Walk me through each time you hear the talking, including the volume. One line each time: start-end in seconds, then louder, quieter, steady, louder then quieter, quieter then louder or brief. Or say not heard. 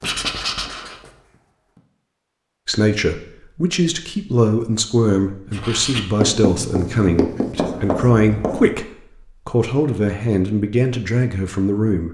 2.6-12.0 steady.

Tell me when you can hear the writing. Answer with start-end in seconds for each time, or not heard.
0.0-1.1, 5.5-8.8.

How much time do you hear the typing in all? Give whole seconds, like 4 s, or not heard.
not heard.